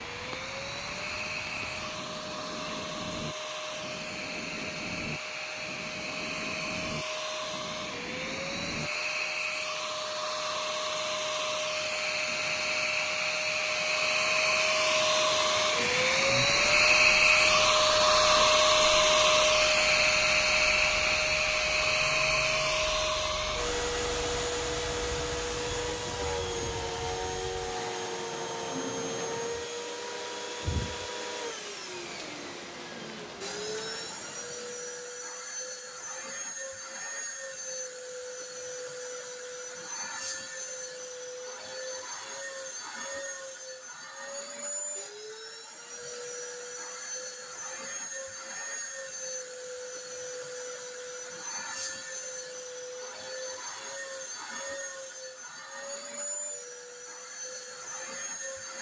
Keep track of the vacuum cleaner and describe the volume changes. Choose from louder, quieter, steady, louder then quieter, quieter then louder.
louder then quieter.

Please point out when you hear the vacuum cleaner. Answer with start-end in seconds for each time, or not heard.
0.0-58.7.